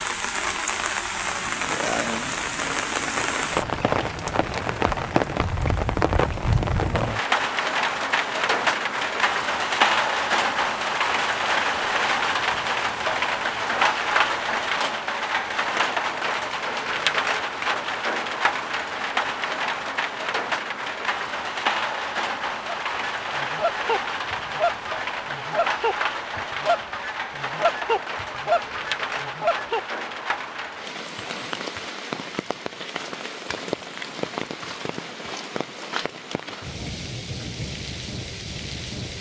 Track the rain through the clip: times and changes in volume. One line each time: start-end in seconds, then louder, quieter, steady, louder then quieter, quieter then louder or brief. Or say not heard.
0.0-39.1 quieter.